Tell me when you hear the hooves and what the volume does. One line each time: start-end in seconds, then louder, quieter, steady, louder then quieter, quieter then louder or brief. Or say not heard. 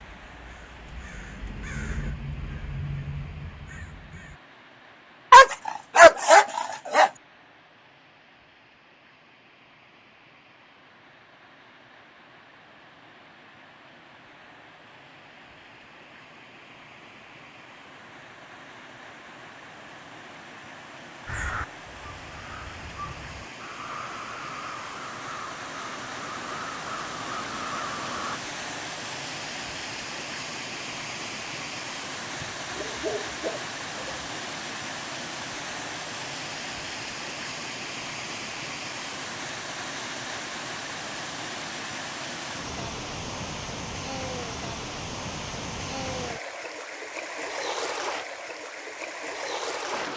not heard.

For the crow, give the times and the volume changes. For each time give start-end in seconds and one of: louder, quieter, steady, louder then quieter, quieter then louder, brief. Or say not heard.
0.0-4.4 louder then quieter
21.2-28.4 louder.